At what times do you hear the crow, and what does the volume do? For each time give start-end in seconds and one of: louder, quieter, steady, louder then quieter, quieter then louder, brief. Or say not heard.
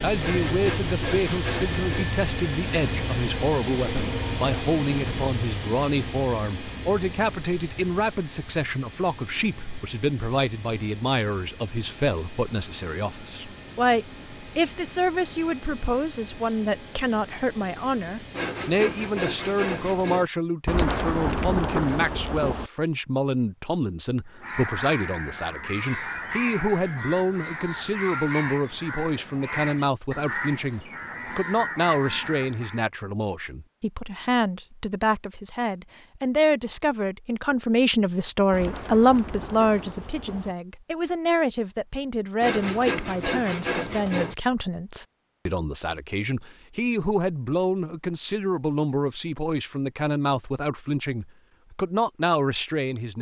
24.4-32.9 steady.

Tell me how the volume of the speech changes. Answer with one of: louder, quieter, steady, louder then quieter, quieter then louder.
steady.